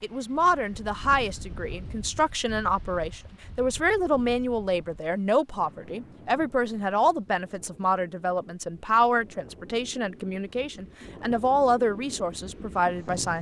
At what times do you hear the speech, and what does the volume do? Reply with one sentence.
You can hear the speech from 0.0 to 13.3 s, at a steady volume.